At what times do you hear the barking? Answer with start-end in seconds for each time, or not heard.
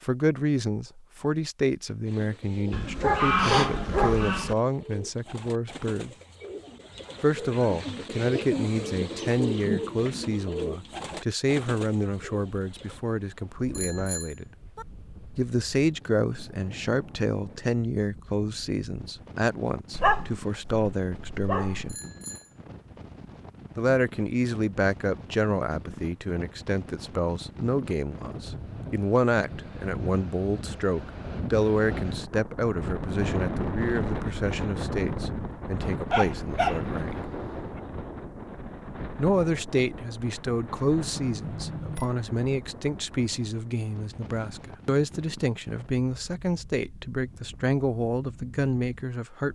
2.7-4.5, 19.9-21.9, 36.1-37.8.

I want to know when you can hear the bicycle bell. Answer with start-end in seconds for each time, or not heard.
13.7-14.8, 21.9-22.5, 41.2-42.1.